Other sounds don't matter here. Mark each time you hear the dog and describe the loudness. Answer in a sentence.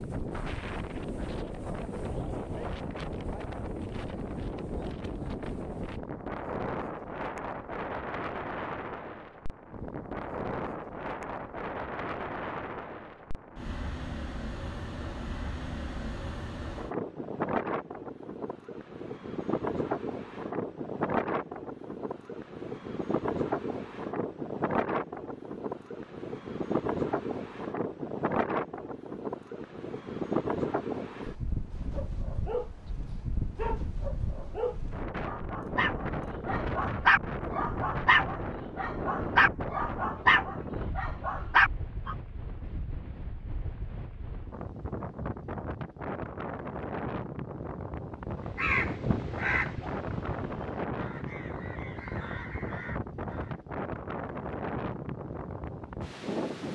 The dog can be heard from 31.8 to 42.1 s, getting louder.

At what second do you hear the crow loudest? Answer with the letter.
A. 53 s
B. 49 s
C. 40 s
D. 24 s
B.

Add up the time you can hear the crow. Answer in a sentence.
The crow can be heard for 5 seconds in total.